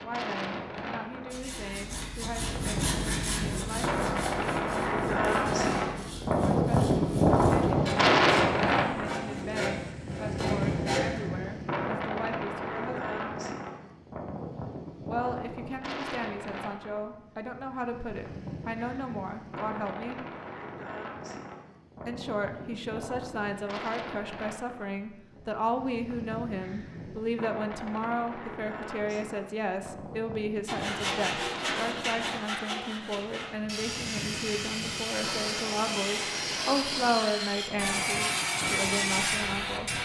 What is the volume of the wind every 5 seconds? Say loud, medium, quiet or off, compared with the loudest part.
medium, loud, medium, quiet, quiet, quiet, quiet, quiet.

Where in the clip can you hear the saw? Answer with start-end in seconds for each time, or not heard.
1.3-11.3, 30.6-39.9.